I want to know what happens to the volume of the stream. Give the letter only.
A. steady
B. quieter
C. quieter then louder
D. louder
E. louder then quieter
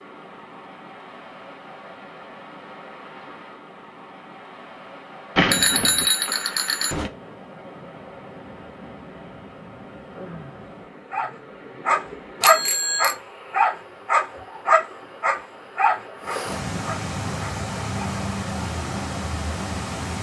D.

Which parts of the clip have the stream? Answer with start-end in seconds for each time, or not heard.
0.0-20.1.